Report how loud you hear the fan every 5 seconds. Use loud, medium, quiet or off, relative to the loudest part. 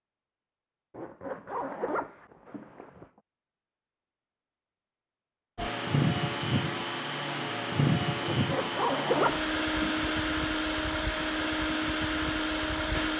off, loud, loud.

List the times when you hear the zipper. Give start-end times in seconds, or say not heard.
0.9-3.1, 8.2-10.3.